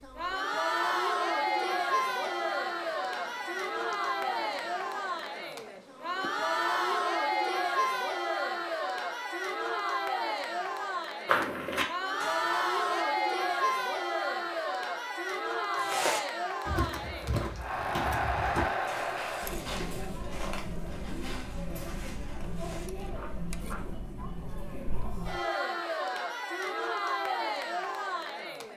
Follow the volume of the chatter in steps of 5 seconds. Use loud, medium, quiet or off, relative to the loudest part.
loud, loud, loud, loud, medium, loud.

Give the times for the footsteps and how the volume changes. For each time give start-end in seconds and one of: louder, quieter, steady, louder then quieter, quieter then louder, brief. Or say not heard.
11.2-13.1 brief
15.8-23.9 quieter.